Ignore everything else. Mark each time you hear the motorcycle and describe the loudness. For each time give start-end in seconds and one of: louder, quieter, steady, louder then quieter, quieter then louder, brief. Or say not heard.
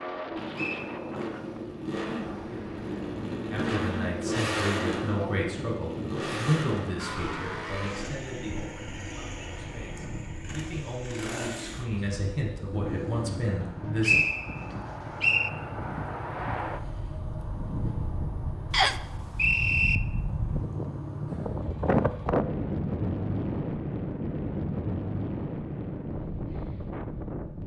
0.0-22.3 quieter.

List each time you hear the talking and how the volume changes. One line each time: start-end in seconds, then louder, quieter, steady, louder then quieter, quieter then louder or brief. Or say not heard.
3.5-14.2 quieter then louder.